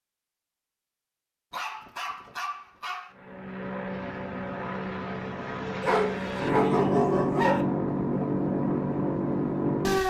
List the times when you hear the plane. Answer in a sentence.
You can hear the plane from 3.1 to 10.0 s.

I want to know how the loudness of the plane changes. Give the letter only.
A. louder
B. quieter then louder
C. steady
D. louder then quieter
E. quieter
A.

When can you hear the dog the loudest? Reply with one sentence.
The loudest moment of the dog is at 7 seconds.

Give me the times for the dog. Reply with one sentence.
You can hear the dog from 1.5 to 3.1 s and from 5.8 to 7.7 s.